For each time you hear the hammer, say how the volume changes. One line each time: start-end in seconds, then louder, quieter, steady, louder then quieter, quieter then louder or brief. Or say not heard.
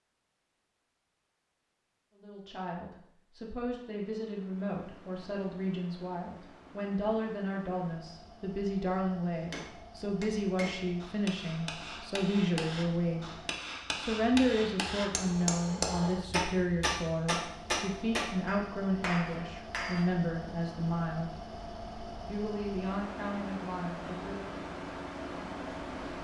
9.4-20.1 louder.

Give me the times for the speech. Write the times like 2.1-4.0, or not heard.
2.1-13.2, 13.9-21.3, 22.2-24.6.